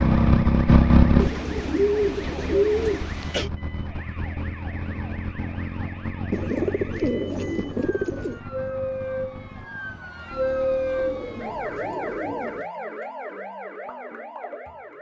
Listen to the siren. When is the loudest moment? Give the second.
11 s.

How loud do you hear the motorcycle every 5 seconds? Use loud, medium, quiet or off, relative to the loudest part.
loud, quiet, quiet.